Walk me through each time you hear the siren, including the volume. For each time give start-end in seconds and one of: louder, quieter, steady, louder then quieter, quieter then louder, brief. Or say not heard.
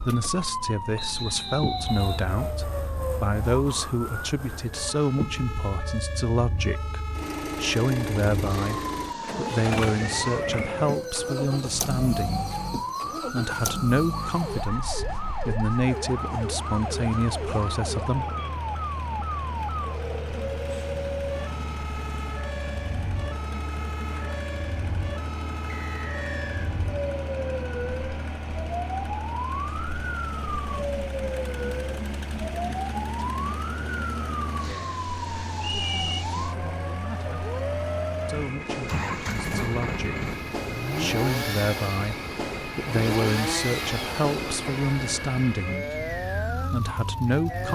0.0-47.7 steady.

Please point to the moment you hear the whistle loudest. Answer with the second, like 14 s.
36 s.